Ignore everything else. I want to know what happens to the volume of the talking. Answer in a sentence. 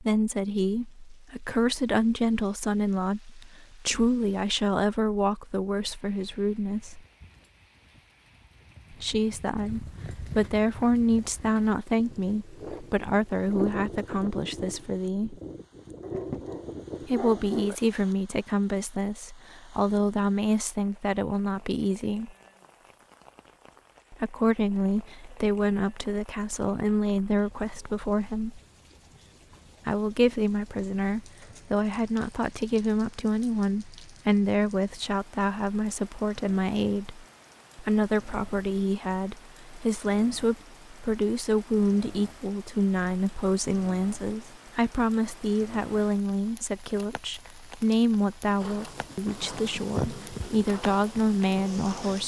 The loudness of the talking stays about the same.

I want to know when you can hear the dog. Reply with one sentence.
You can hear the dog from 16.0 to 17.8 s.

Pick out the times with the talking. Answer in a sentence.
You can hear the talking from 0.0 to 7.0 s, from 8.9 to 15.3 s, from 17.1 to 22.3 s, from 24.1 to 28.6 s and from 29.9 to 52.2 s.